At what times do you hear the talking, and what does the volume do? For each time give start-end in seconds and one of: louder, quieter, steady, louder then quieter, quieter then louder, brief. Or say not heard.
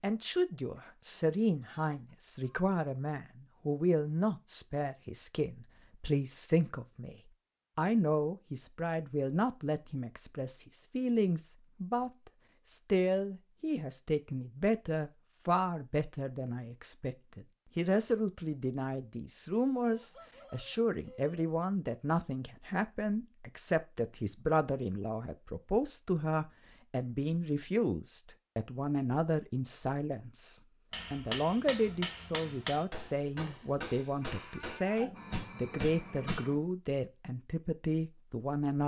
0.0-38.8 steady.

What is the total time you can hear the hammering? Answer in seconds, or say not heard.
6 s.